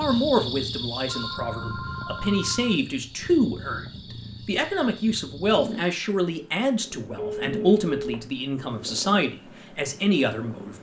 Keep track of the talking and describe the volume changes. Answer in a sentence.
The loudness of the talking stays about the same.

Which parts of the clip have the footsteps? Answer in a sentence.
The footsteps can't be heard in this clip.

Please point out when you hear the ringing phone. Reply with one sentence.
You can hear the ringing phone from 1.1 to 2.8 s and from 7.2 to 8.2 s.